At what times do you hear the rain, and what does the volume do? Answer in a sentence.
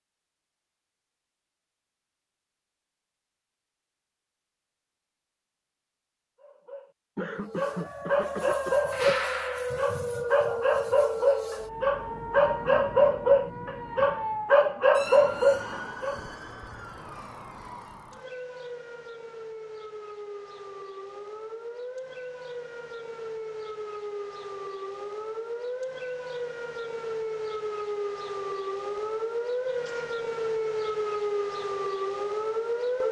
You can't hear the rain here.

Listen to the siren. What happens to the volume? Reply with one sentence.
The volume of the siren goes down, then up.